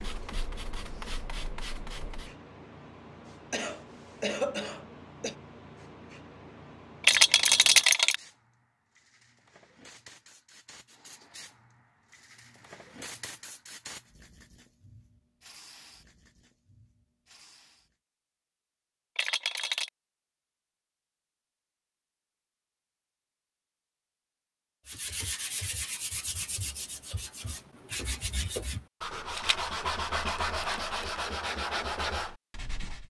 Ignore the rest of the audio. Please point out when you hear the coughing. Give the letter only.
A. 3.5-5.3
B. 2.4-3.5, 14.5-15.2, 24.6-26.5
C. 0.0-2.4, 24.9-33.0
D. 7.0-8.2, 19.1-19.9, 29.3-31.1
A.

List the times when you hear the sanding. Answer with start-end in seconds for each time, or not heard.
0.0-2.4, 24.9-33.0.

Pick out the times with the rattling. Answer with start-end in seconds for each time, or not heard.
7.0-8.2, 19.1-19.9, 29.3-31.1.